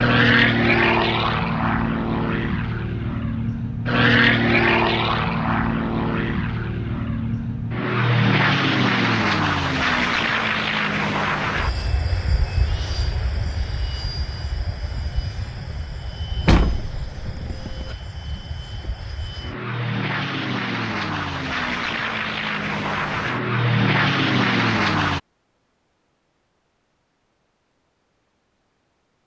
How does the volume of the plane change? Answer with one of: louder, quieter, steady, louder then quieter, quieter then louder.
quieter then louder.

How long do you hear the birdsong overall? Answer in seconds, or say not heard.
not heard.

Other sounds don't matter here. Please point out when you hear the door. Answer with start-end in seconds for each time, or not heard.
16.4-17.9.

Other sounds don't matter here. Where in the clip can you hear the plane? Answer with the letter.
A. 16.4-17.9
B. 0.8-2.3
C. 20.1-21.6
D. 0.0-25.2
D.